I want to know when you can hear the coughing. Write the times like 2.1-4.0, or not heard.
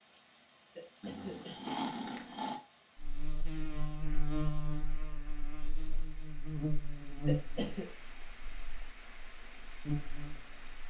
0.8-1.8, 7.2-7.8.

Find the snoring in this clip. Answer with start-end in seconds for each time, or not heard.
1.0-2.6.